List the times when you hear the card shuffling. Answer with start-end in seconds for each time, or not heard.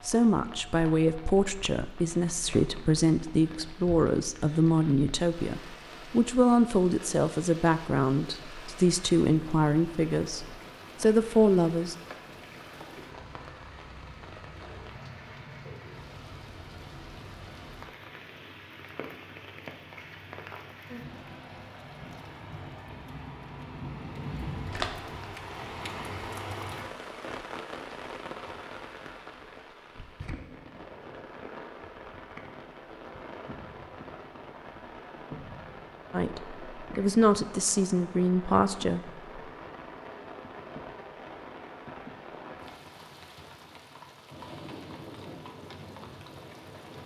24.7-25.2.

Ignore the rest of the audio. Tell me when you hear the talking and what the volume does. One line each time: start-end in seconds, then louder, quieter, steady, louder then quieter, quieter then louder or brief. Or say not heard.
0.1-11.9 steady
36.1-39.0 brief.